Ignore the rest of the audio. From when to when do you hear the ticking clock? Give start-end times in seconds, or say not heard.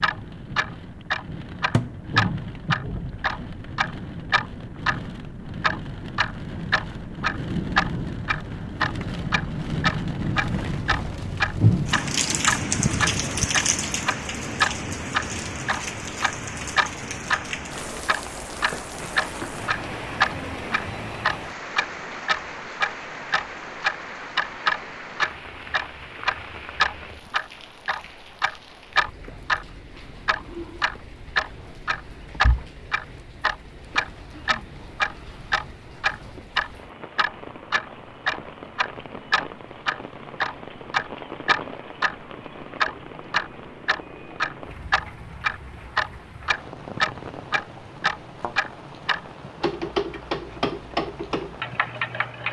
0.0-17.4, 18.1-52.4.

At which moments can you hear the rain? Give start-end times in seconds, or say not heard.
0.0-52.4.